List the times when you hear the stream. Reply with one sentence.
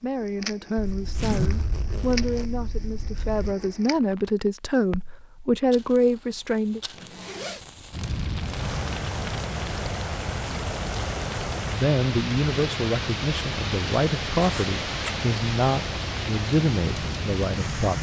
The stream can be heard from 8.3 to 17.9 s.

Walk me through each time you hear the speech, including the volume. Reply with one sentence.
The speech can be heard from 0.0 to 6.8 s, getting louder; and from 11.7 to 17.9 s, at a steady volume.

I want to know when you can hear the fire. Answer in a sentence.
The fire can be heard from 0.0 to 17.9 s.